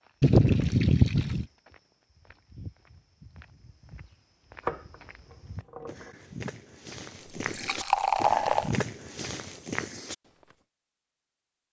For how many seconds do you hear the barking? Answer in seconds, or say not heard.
not heard.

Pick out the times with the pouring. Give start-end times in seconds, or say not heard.
0.2-1.4, 7.4-8.8.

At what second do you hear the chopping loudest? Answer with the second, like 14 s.
5 s.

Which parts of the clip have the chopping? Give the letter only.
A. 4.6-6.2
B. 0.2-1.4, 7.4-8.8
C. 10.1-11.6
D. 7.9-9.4
A.